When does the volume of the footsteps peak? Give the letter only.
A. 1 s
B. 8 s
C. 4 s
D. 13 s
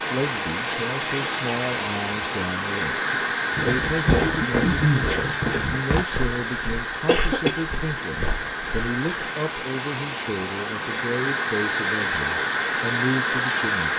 C.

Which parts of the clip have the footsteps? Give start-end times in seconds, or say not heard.
3.5-9.2.